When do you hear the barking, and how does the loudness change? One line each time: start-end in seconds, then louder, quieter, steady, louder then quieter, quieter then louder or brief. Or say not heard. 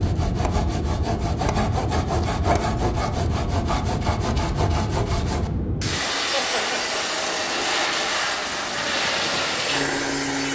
not heard.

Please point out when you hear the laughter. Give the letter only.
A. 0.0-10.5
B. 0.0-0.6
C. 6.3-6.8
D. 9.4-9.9
C.